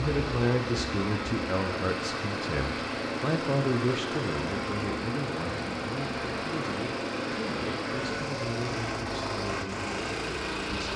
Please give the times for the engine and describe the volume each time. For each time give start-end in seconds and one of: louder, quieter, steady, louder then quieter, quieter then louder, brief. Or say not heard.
0.0-10.9 steady.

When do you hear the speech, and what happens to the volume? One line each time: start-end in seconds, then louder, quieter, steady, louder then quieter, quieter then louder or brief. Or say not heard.
0.0-10.9 quieter.